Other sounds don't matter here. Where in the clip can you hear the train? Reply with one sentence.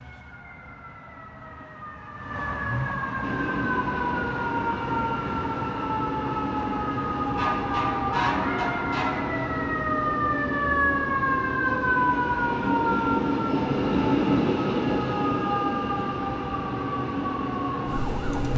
You can hear the train from 3.2 to 18.5 s.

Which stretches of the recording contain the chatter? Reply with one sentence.
The chatter can't be heard in this clip.